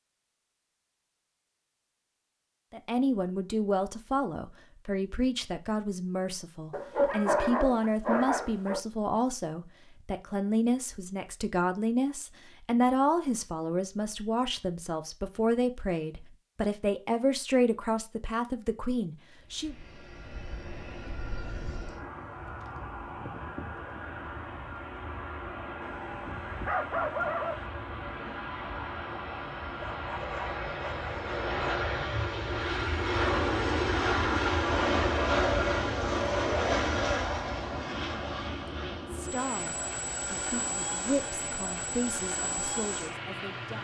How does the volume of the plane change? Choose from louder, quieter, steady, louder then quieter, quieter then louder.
louder then quieter.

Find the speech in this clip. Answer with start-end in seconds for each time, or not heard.
2.7-19.8, 39.1-43.7.